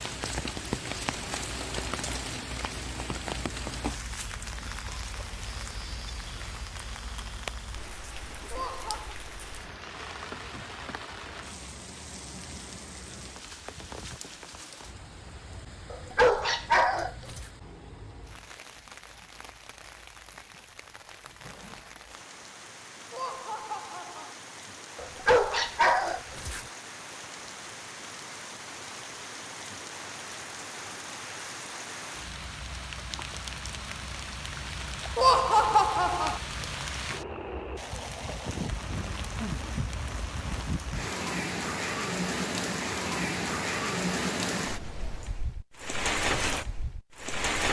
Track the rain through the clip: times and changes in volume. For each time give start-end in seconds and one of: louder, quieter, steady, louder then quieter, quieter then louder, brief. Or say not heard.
0.0-47.6 quieter then louder.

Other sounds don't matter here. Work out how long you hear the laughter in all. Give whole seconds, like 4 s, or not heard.
3 s.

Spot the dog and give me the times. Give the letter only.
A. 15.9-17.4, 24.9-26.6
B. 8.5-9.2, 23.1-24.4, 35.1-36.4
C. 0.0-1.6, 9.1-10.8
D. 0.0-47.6
A.